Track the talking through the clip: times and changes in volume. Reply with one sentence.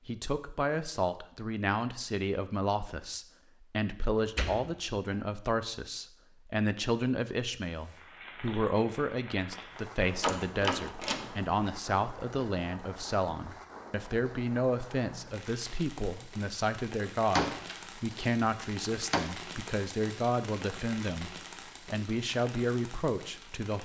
The talking can be heard from 0.1 to 23.8 s, at a steady volume.